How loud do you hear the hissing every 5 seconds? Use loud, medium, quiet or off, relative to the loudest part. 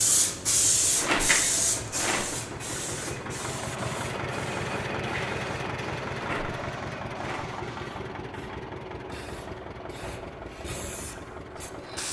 loud, quiet, medium.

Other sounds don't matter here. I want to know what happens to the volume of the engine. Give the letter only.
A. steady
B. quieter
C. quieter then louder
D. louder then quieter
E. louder
D.